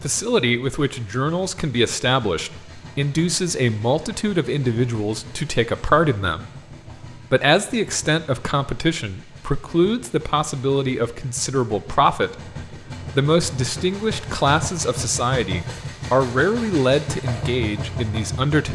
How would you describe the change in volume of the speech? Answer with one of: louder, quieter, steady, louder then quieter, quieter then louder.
steady.